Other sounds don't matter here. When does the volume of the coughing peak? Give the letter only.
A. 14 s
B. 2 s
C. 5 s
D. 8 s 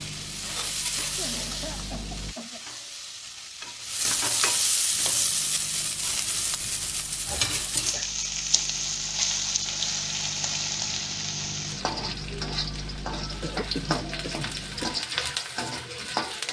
A.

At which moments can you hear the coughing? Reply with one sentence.
The coughing can be heard from 1.1 to 2.6 s, from 6.6 to 8.1 s and from 13.4 to 14.9 s.